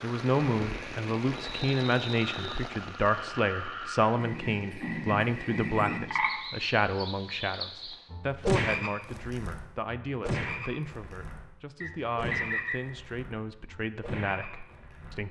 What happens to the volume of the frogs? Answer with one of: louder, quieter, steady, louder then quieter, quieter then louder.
louder then quieter.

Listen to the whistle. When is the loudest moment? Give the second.
12 s.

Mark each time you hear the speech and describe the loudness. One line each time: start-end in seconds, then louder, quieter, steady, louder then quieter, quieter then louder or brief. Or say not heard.
0.0-15.2 quieter.